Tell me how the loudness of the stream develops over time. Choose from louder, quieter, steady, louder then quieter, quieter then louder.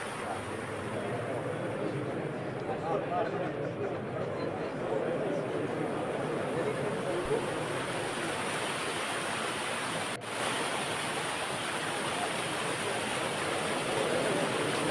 louder.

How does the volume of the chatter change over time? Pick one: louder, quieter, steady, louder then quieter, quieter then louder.
quieter then louder.